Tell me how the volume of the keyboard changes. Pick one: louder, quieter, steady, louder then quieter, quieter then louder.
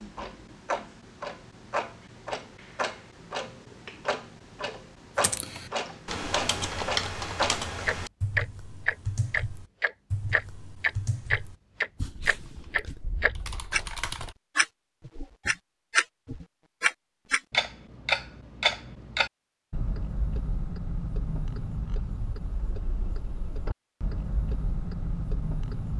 quieter.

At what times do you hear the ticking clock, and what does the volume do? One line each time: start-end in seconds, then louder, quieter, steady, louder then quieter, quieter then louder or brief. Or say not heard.
0.0-25.9 louder then quieter.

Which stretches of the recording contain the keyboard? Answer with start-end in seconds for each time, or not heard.
5.2-14.3.